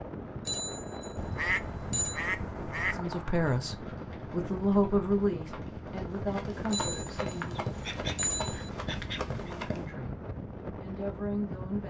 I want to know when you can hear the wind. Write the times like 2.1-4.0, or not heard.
0.0-11.8.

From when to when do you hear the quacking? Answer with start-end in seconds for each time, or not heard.
1.1-3.0, 7.8-9.4.